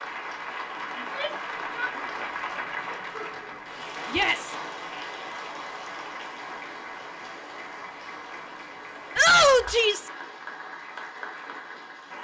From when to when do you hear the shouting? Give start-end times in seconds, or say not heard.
0.9-1.9, 4.0-4.5, 9.2-10.1.